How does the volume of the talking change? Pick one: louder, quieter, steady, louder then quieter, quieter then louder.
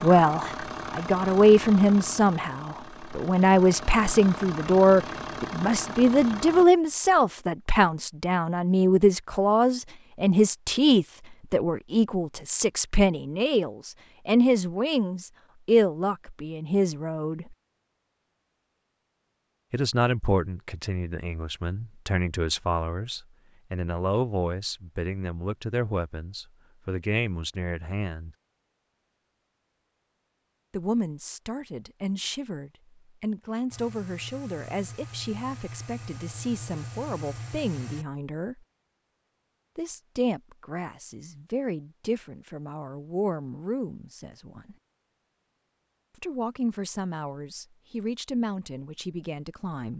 quieter.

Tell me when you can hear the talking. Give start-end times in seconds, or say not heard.
0.0-17.6, 19.7-28.4, 30.7-38.6, 39.8-44.8, 46.2-49.9.